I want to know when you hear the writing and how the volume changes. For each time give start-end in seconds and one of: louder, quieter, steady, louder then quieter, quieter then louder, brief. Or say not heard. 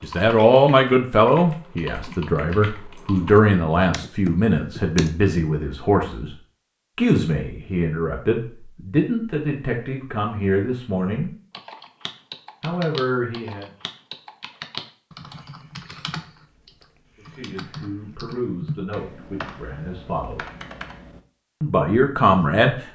not heard.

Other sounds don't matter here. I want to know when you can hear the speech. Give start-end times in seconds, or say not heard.
0.0-6.3, 7.0-11.3, 12.6-13.7, 17.1-20.4, 21.6-22.9.